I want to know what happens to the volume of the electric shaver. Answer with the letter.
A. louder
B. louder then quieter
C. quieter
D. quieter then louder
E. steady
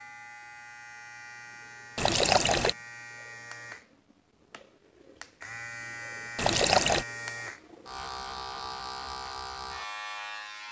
A.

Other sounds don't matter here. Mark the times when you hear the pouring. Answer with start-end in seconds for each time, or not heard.
1.9-2.8, 6.3-7.0.